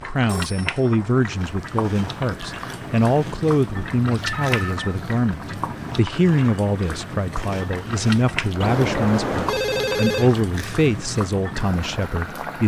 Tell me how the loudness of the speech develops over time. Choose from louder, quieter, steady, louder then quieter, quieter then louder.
steady.